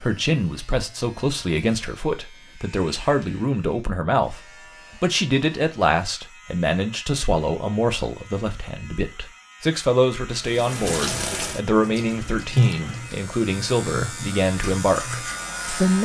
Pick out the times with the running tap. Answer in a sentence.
The running tap can be heard from 10.4 to 16.0 s.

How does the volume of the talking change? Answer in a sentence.
The loudness of the talking stays about the same.